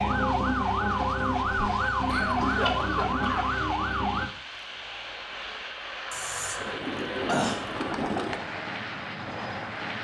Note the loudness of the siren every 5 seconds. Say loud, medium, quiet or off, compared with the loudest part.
loud, off.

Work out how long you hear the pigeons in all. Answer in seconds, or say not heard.
3 s.